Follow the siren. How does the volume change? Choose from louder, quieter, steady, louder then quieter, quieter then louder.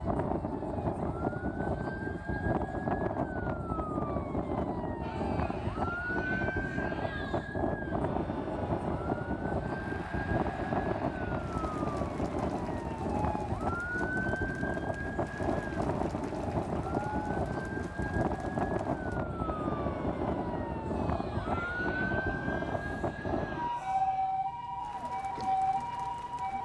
steady.